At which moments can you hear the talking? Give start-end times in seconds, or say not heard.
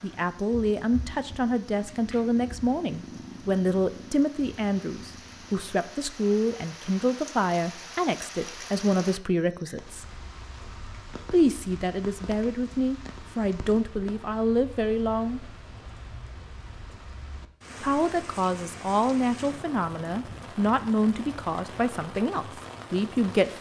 0.0-10.1, 11.3-15.4, 17.8-23.5.